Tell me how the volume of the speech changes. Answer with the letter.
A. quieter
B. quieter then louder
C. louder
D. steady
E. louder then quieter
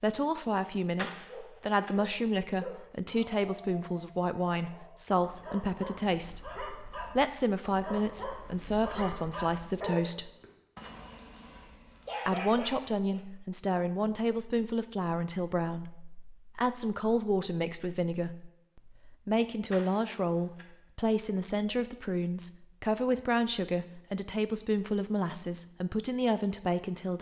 D.